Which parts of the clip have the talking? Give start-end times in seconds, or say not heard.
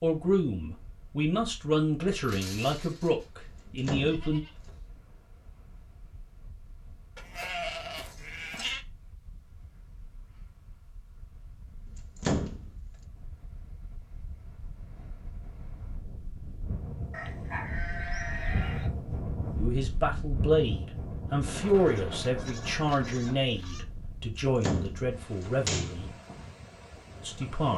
0.0-4.4, 19.6-26.1, 27.2-27.7.